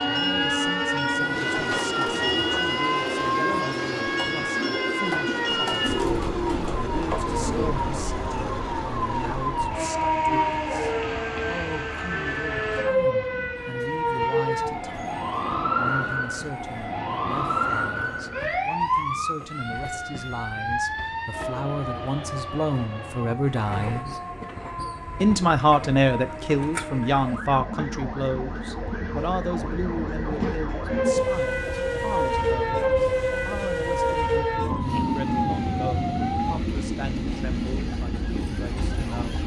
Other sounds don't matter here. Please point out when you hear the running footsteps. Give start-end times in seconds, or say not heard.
not heard.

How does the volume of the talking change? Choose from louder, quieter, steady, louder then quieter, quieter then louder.
louder then quieter.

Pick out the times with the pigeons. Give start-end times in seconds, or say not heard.
1.1-7.8.